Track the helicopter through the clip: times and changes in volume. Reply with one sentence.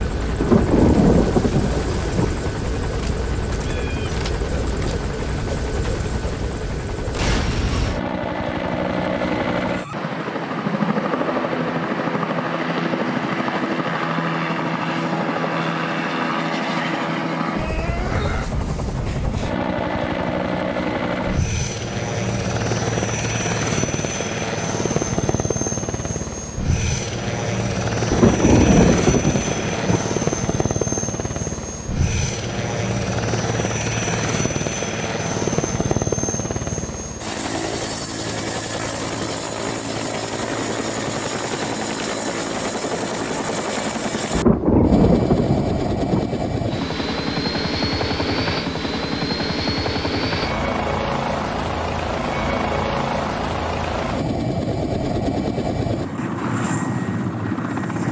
The helicopter can be heard from 0.0 to 58.0 s, at a steady volume.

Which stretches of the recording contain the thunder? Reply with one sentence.
The thunder can be heard from 0.4 to 2.2 s, from 28.1 to 30.0 s and from 44.4 to 46.2 s.